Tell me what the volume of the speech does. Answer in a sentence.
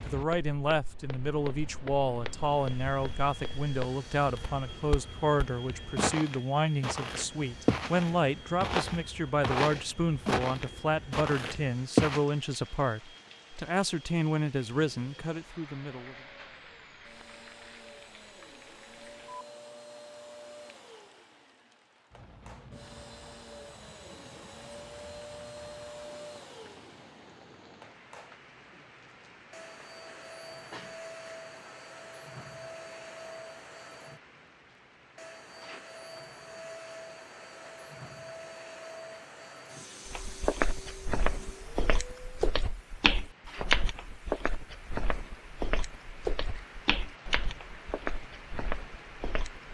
The loudness of the speech stays about the same.